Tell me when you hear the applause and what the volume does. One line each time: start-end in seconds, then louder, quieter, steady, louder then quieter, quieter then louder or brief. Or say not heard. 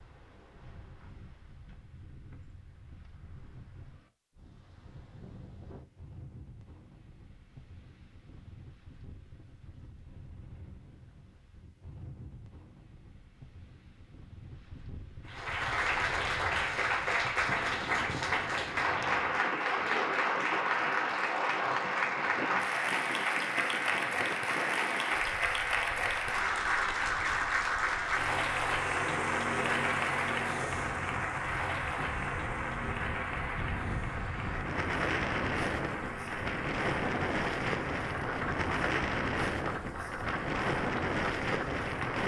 15.2-42.2 quieter.